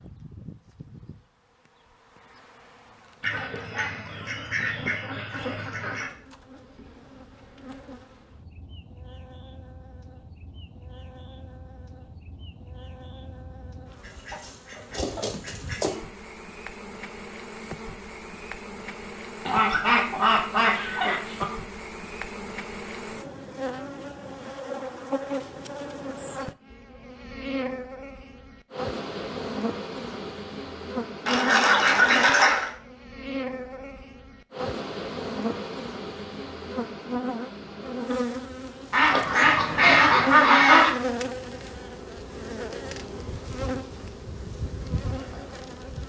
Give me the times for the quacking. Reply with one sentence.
The quacking can be heard from 3.2 to 6.1 s, from 14.1 to 15.9 s, from 19.4 to 21.4 s, from 31.2 to 32.7 s and from 38.9 to 40.9 s.